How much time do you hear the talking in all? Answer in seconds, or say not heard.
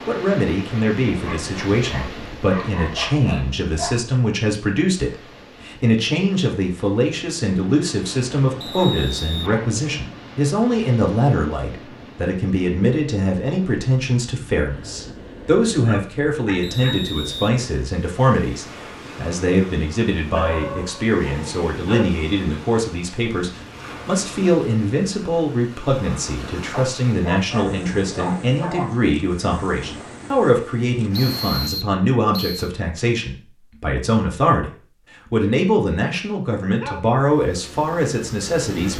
38 s.